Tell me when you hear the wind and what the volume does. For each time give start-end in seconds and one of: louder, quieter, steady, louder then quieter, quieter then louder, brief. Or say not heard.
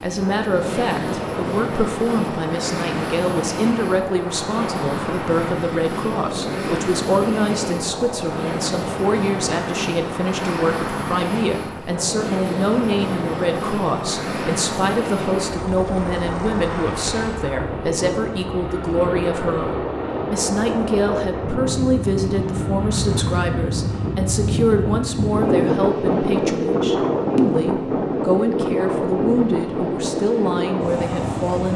0.0-31.7 louder.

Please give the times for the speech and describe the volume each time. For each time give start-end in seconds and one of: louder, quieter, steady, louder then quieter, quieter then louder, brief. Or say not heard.
0.0-31.7 steady.